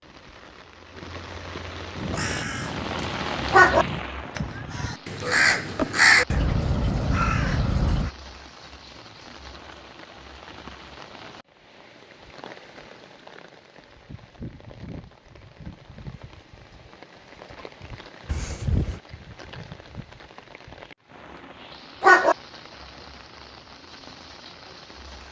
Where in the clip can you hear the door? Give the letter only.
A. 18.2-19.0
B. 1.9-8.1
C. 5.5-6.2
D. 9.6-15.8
A.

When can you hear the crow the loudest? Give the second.
6 s.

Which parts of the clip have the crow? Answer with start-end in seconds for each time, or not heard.
1.9-8.1.